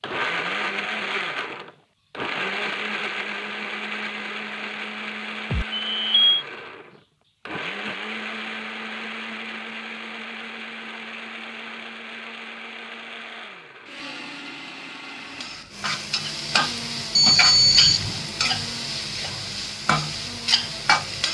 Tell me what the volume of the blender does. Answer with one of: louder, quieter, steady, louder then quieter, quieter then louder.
quieter.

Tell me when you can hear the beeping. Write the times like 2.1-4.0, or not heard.
5.5-6.5, 17.1-18.6.